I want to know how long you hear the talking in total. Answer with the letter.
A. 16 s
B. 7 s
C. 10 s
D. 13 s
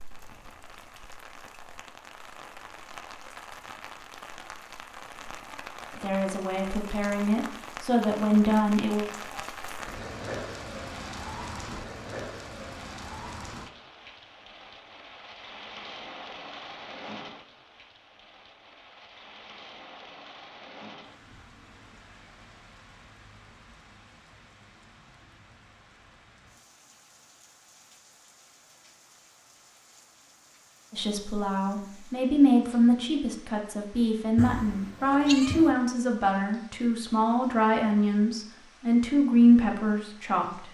D.